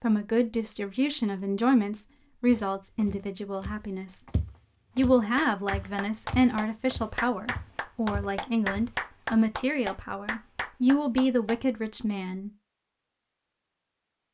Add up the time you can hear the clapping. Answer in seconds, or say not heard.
6 s.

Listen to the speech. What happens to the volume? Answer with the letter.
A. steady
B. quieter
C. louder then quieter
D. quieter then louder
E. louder
A.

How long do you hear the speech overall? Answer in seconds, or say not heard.
12 s.